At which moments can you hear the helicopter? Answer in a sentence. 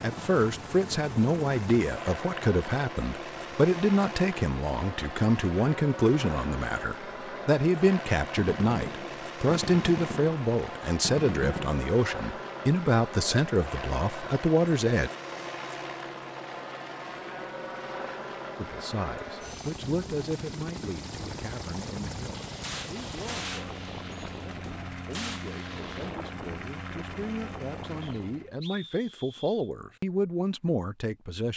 You can hear the helicopter from 0.0 to 28.6 s.